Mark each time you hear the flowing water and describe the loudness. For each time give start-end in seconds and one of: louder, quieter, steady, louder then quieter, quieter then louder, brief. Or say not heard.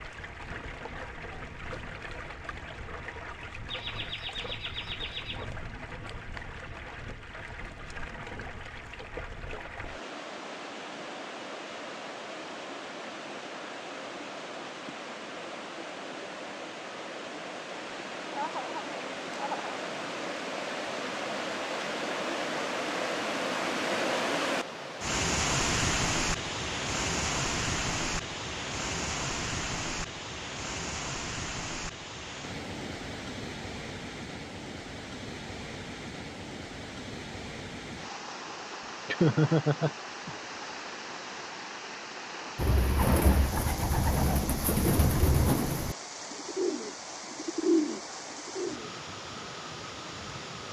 0.0-50.6 louder then quieter.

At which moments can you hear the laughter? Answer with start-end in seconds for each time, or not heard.
3.7-5.5, 18.3-19.8, 39.0-40.3.